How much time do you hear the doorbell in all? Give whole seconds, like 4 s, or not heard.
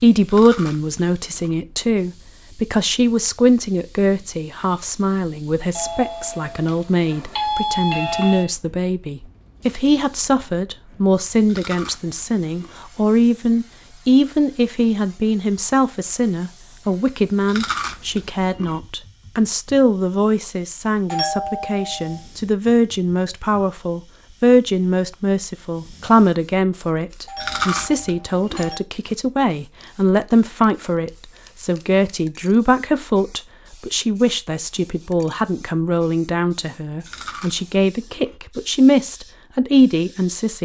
5 s.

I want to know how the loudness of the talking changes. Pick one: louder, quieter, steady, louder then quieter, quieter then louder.
steady.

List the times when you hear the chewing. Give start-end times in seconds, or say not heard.
0.3-1.6, 11.4-12.8, 17.4-18.8, 27.4-28.7, 37.0-38.4.